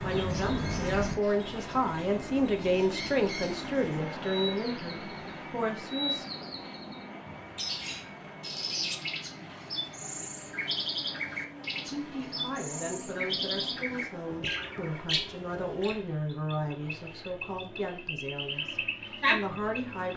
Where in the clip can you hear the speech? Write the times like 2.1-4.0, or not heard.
0.0-6.2, 11.8-20.1.